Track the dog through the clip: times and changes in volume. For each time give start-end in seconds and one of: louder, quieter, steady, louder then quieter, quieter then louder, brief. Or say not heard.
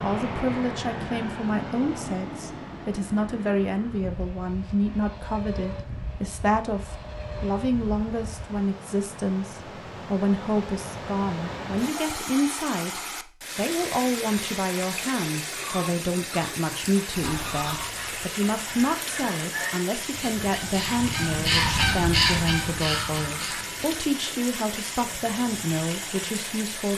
not heard.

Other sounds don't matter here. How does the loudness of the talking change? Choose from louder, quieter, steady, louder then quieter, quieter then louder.
steady.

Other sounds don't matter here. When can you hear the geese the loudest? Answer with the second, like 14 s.
22 s.